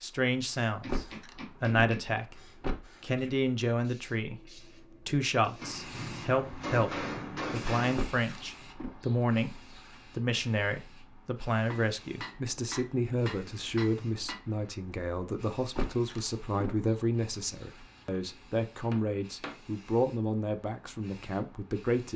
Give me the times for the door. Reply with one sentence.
The door can be heard from 0.8 to 3.4 s, from 8.0 to 9.0 s and from 15.8 to 16.9 s.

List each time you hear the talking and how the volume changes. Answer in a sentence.
You can hear the talking briefly from 0.0 to 2.4 s; and from 3.0 to 22.1 s, at a steady volume.